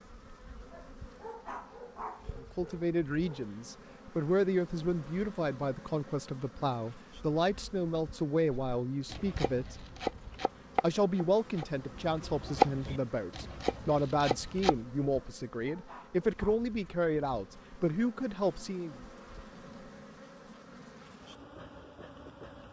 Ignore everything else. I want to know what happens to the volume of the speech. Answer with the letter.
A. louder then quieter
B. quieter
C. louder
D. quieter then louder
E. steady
E.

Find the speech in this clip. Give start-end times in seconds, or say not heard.
2.4-9.8, 10.8-18.9.